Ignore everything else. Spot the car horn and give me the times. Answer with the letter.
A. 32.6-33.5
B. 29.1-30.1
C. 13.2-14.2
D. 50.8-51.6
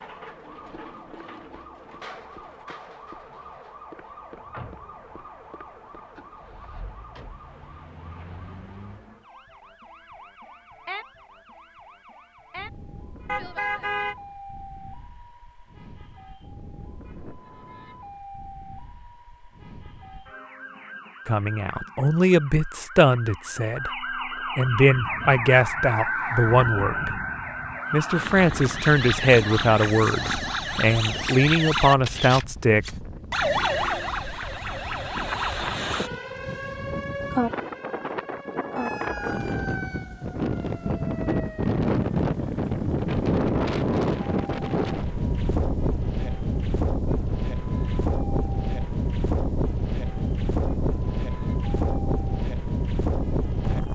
C.